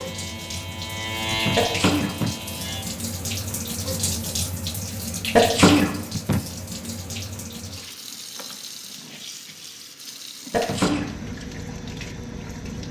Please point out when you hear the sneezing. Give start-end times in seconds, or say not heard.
1.6-2.1, 5.3-5.9, 10.5-11.1.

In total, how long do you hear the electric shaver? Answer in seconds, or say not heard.
3 s.